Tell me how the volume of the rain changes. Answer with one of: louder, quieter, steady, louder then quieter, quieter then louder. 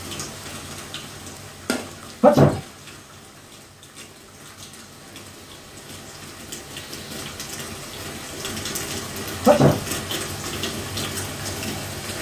quieter then louder.